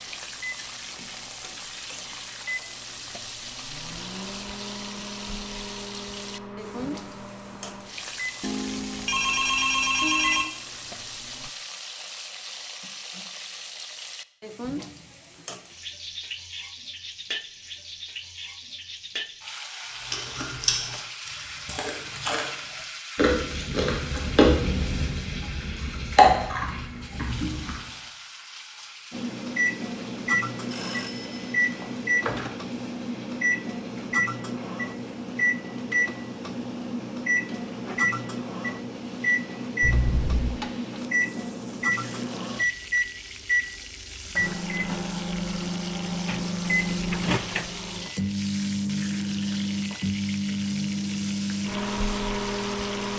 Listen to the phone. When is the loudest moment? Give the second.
10 s.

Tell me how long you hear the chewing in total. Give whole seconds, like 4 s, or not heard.
8 s.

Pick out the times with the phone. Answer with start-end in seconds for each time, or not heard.
8.4-10.4, 30.7-32.5, 39.8-40.6.